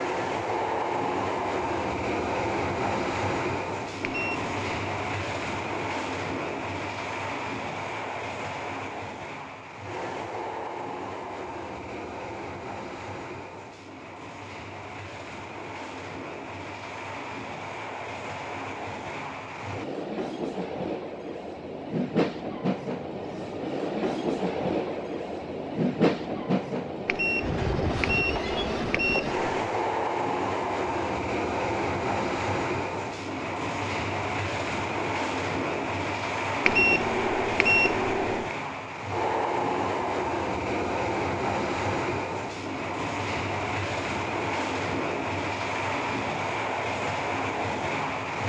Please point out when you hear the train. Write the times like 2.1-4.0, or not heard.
0.0-48.4.